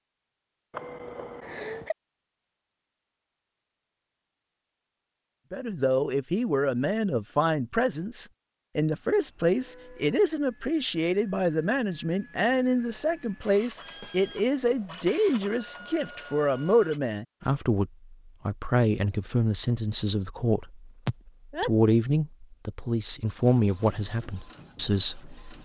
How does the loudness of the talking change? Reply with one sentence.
The volume of the talking stays about the same.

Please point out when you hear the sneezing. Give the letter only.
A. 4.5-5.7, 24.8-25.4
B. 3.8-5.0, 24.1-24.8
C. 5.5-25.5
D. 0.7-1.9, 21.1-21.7
D.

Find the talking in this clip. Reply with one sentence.
The talking can be heard from 5.5 to 25.5 s.